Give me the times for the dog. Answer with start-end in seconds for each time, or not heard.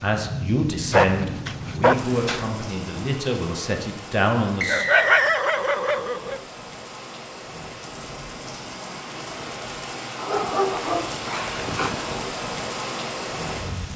0.9-2.5, 4.7-6.4, 10.2-12.2.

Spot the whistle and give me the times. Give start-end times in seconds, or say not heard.
4.6-5.5.